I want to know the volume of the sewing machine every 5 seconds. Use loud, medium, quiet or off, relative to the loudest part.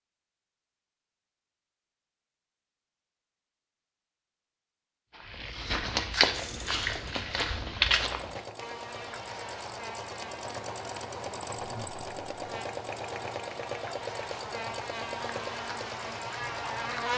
off, medium, loud, loud.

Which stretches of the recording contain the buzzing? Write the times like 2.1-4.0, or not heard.
8.6-17.1.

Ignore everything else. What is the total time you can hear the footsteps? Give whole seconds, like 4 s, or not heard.
3 s.